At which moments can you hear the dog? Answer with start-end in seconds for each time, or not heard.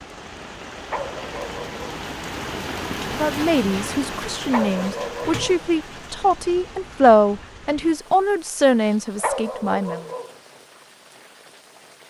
0.8-1.9, 4.5-5.7, 9.2-10.3.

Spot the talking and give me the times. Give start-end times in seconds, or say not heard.
3.1-10.1.